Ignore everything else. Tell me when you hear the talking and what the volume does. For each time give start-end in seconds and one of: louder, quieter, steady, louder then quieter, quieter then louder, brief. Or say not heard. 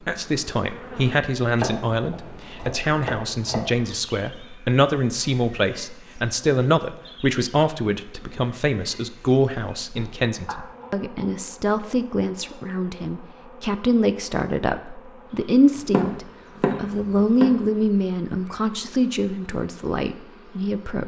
0.1-21.0 steady.